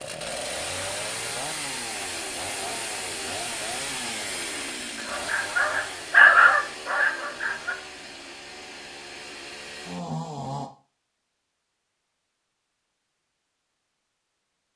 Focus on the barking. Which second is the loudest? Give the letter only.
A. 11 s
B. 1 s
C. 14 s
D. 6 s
D.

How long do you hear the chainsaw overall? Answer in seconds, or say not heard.
11 s.